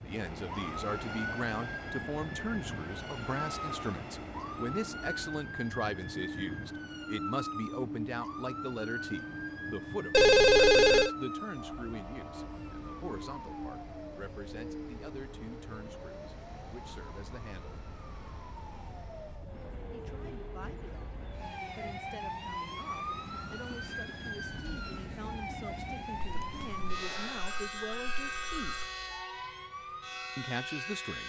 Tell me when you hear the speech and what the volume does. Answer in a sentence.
The speech can be heard from 0.0 to 17.8 s, getting quieter; from 19.9 to 28.9 s, getting louder; and briefly from 30.4 to 31.2 s.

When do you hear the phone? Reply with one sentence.
The phone can be heard from 10.1 to 11.1 s and from 26.2 to 28.9 s.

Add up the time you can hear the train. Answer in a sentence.
You can hear the train for 31 seconds altogether.